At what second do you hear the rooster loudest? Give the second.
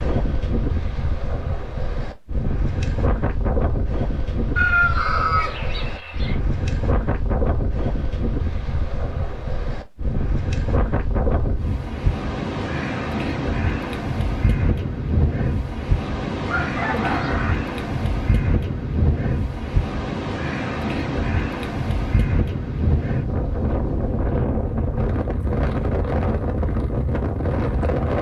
5 s.